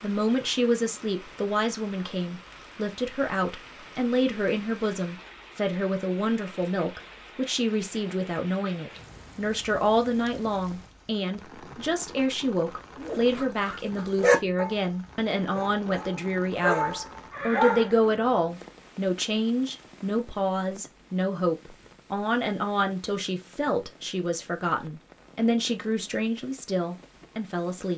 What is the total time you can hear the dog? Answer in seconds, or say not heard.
5 s.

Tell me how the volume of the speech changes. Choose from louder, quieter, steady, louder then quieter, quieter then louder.
steady.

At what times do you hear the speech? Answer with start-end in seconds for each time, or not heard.
0.0-27.9.